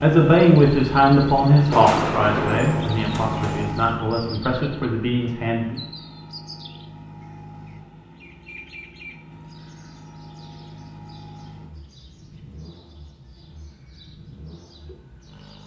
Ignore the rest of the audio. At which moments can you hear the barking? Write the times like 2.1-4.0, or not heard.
not heard.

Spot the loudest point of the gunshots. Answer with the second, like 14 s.
2 s.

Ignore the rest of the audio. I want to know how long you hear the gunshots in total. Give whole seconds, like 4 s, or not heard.
2 s.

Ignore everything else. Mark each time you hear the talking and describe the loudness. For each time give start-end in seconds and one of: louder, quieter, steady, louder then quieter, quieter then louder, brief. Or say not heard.
0.0-5.8 quieter.